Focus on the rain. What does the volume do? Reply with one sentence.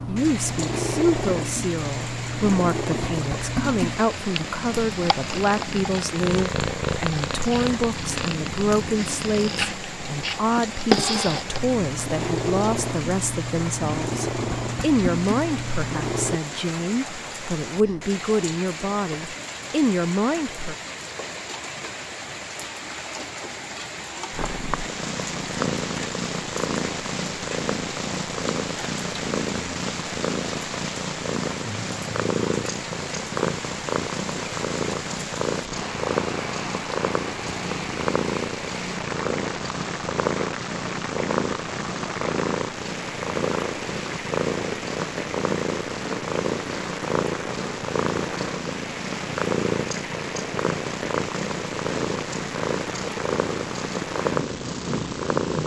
The volume of the rain stays about the same.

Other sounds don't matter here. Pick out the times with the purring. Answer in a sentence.
The purring can be heard from 0.0 to 16.4 s and from 24.3 to 55.6 s.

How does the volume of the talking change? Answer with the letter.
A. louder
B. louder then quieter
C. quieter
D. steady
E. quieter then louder
D.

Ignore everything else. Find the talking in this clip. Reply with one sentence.
The talking can be heard from 0.1 to 20.8 s.